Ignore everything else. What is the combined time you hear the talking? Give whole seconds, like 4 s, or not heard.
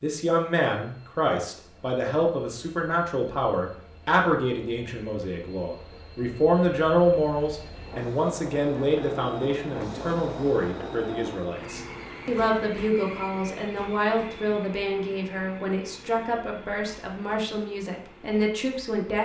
19 s.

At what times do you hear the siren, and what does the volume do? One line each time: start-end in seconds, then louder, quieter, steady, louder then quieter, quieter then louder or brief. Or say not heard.
not heard.